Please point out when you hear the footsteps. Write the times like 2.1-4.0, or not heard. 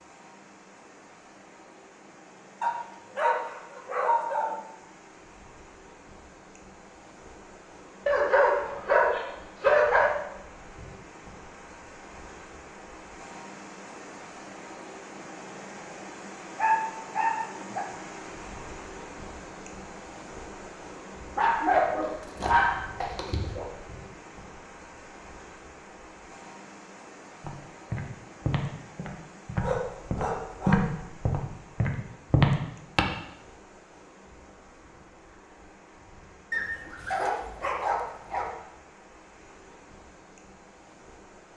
27.4-33.0.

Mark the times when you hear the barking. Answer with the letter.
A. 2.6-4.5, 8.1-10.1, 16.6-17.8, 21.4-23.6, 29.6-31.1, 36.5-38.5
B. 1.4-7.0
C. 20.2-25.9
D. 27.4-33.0
A.